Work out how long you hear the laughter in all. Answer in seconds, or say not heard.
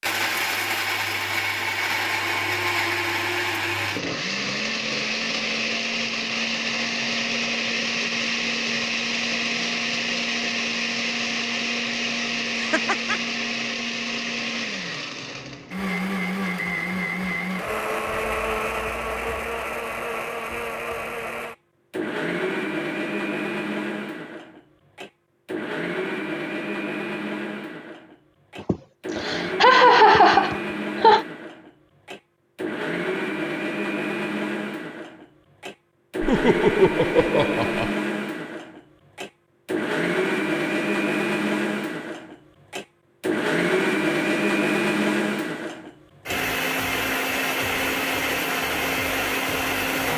5 s.